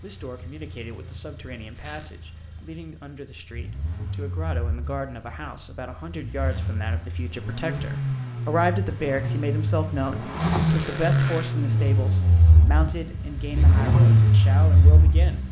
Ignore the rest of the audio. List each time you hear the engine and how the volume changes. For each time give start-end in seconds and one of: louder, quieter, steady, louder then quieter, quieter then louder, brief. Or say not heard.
0.0-15.4 louder.